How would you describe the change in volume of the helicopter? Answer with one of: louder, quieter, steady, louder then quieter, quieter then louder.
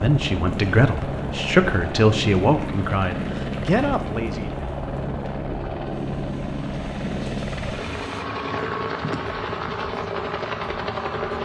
steady.